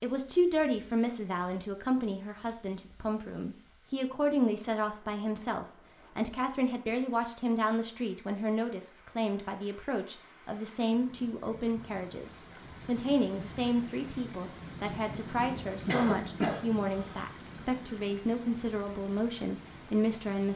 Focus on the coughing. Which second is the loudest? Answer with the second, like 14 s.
16 s.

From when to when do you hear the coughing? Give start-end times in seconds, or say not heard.
15.8-17.3.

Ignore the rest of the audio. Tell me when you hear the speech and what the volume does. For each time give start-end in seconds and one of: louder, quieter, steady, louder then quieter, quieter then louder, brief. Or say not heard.
0.0-20.5 steady.